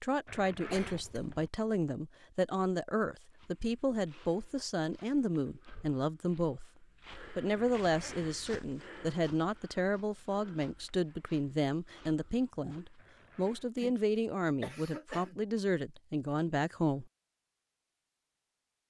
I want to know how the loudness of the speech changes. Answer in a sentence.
The volume of the speech stays about the same.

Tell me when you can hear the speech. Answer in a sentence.
You can hear the speech from 0.0 to 17.1 s.